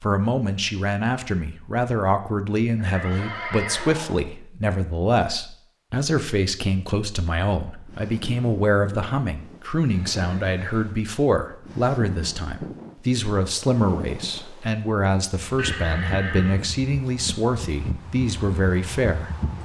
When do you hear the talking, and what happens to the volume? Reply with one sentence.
You can hear the talking from 0.0 to 19.3 s, at a steady volume.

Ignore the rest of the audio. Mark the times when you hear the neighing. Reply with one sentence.
The neighing can be heard from 2.8 to 4.2 s, from 9.8 to 10.9 s and from 15.6 to 16.6 s.